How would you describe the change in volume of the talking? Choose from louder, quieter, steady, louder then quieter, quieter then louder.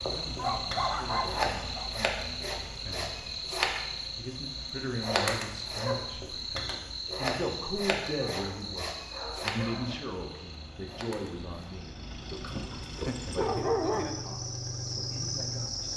louder then quieter.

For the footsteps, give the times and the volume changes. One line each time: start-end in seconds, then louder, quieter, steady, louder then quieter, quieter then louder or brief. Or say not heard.
not heard.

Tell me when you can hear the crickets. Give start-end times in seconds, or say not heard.
0.0-15.9.